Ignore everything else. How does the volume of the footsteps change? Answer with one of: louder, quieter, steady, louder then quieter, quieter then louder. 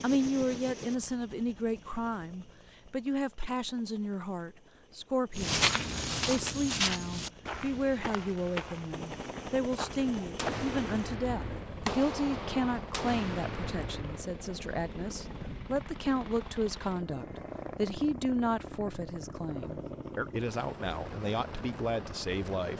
quieter.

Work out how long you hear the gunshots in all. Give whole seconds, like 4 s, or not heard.
4 s.